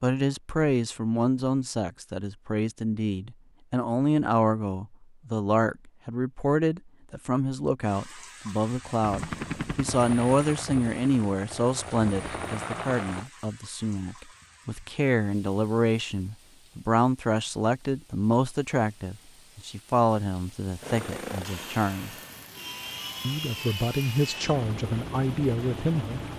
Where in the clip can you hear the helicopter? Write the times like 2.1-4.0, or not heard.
9.0-13.3, 20.8-26.3.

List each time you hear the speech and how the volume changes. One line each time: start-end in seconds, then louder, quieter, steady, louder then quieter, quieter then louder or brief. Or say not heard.
0.0-22.1 steady
23.2-26.2 brief.